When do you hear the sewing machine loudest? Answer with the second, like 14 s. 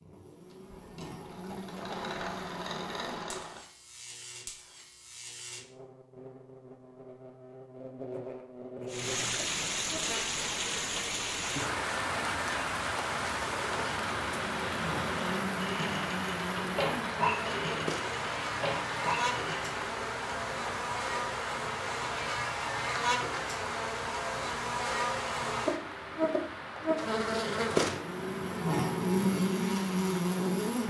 17 s.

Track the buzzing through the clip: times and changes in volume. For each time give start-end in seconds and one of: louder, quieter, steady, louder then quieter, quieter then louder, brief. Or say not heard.
0.0-30.8 louder.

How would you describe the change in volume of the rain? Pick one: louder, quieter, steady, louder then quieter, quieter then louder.
quieter.